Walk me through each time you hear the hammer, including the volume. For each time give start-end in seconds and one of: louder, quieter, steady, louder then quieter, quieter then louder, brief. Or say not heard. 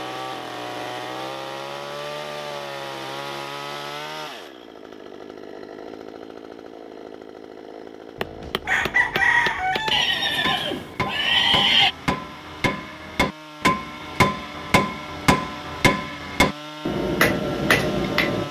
8.2-18.4 louder.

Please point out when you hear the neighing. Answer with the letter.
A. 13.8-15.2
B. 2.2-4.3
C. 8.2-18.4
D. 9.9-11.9
D.